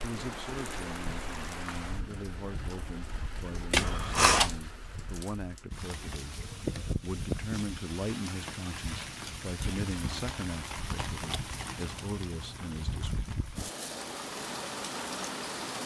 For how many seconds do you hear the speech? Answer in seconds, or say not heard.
13 s.